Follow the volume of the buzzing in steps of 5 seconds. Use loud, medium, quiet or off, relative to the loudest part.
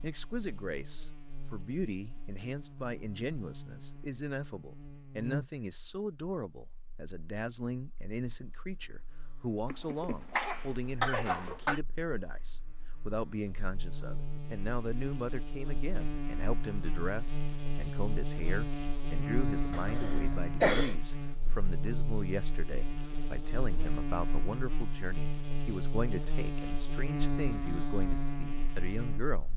quiet, medium, medium, loud, loud, loud.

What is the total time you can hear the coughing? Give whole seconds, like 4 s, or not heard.
3 s.